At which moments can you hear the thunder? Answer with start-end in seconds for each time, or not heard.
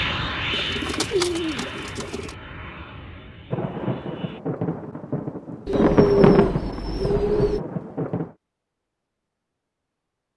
3.5-8.3.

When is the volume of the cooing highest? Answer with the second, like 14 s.
6 s.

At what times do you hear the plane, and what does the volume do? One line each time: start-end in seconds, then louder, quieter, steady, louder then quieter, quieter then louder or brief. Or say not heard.
0.0-4.4 quieter.